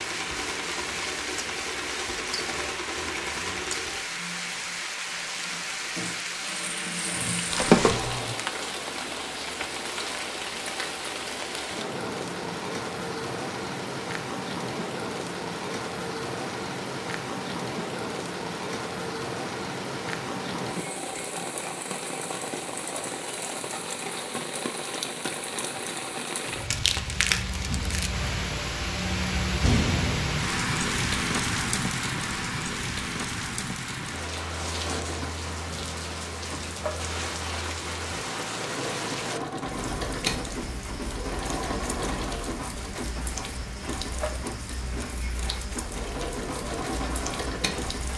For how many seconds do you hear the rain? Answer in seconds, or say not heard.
48 s.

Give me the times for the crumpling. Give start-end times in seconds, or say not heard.
7.5-8.2, 26.5-28.1.